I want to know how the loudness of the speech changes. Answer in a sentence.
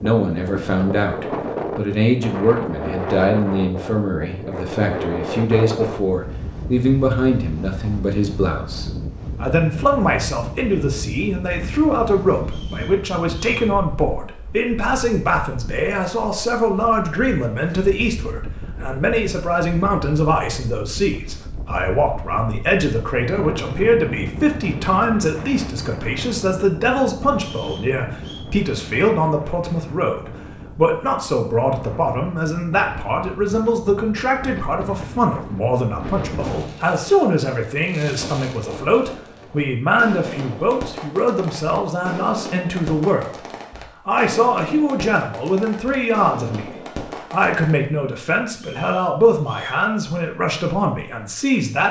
The volume of the speech stays about the same.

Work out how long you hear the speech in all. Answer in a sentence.
The speech can be heard for 51 seconds in total.